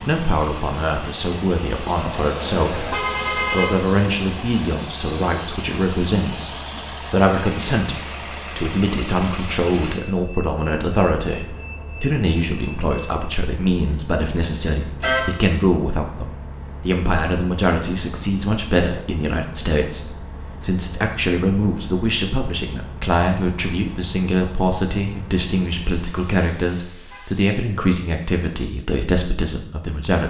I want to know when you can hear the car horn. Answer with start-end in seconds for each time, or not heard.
2.1-3.8, 15.0-15.4, 25.9-27.5.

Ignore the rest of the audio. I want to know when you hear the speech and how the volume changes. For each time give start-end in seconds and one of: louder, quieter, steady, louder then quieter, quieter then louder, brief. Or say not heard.
0.0-30.2 steady.